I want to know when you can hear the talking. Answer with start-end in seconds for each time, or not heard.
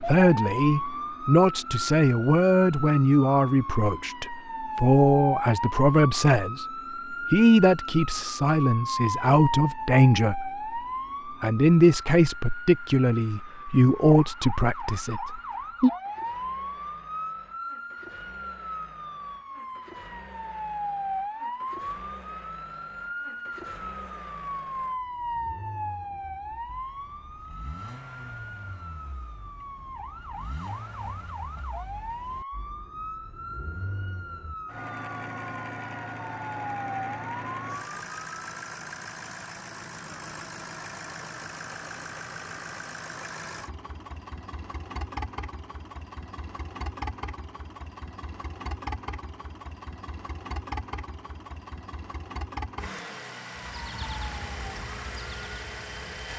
0.0-10.7, 11.4-15.9.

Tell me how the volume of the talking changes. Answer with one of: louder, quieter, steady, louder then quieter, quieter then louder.
steady.